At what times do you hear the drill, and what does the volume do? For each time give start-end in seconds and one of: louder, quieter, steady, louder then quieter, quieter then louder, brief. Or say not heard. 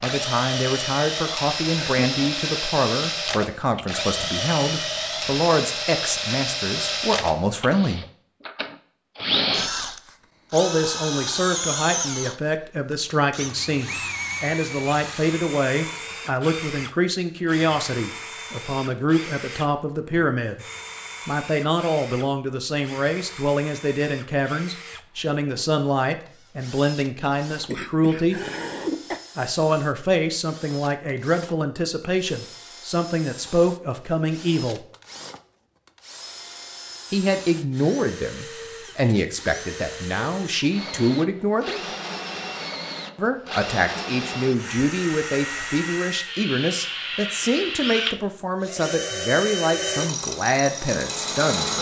0.0-51.7 quieter then louder.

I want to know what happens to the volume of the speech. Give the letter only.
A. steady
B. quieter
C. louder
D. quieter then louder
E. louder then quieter
A.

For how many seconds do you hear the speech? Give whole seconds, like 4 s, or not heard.
44 s.